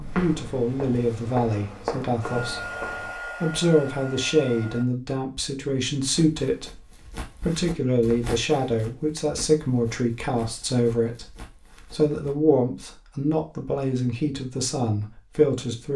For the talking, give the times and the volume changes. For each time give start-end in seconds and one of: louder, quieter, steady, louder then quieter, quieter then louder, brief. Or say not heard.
0.0-2.8 brief
3.4-15.9 steady.